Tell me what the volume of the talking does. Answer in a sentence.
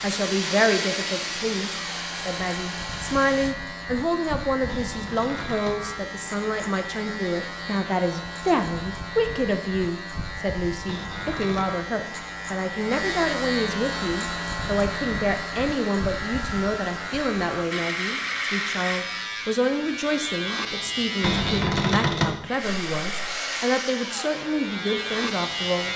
The loudness of the talking stays about the same.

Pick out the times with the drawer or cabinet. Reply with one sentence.
You can hear the drawer or cabinet from 4.7 to 5.8 s, from 10.8 to 11.8 s and from 21.2 to 22.4 s.